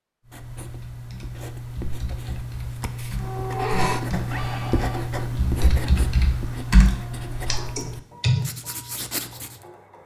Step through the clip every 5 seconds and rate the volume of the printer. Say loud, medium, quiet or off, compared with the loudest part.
loud, quiet.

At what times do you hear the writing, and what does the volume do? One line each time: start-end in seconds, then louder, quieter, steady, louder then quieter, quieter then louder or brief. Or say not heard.
0.2-9.7 louder then quieter.